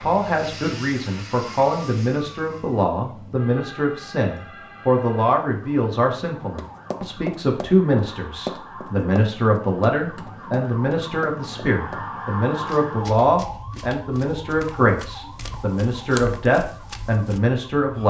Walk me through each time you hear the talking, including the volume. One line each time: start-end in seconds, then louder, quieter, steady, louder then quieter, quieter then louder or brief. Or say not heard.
0.0-18.0 steady.